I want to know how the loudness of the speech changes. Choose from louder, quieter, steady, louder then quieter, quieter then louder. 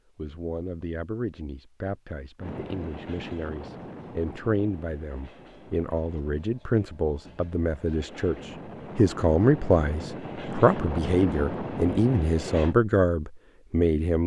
louder.